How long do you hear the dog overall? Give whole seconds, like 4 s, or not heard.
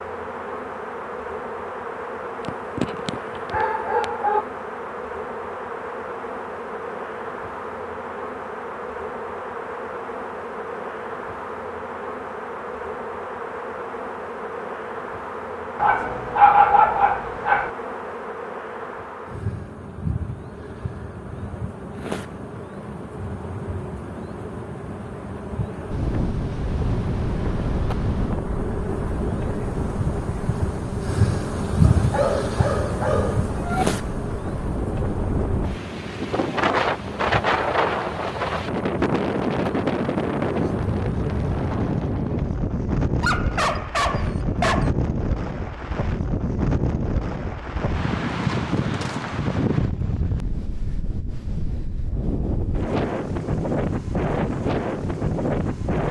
8 s.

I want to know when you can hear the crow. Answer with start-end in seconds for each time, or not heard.
not heard.